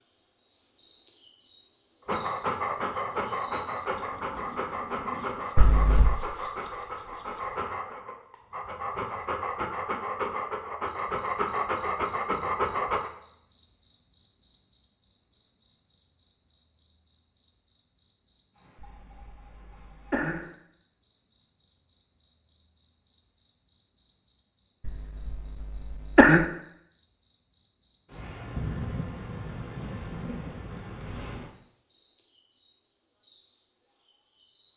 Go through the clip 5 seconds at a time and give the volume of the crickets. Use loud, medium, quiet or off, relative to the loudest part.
medium, loud, medium, quiet, quiet, quiet, quiet.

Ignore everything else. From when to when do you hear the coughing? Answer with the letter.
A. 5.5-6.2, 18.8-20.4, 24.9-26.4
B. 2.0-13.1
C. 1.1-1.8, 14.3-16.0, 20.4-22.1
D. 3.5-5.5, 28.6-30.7
A.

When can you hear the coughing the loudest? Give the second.
26 s.